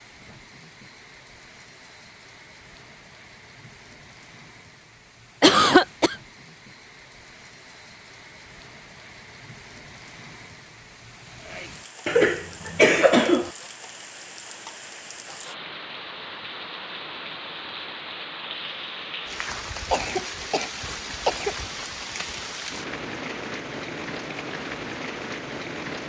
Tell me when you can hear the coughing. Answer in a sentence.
The coughing can be heard from 5.4 to 6.2 s, from 12.1 to 13.5 s and from 19.9 to 21.6 s.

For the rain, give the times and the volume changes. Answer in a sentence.
The rain can be heard from 0.0 to 26.0 s, getting louder.